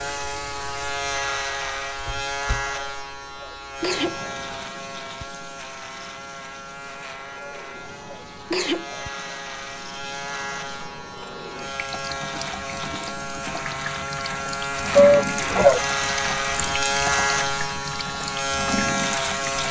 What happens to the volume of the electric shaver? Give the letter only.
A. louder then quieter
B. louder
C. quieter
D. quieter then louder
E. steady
D.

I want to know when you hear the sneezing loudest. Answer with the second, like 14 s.
15 s.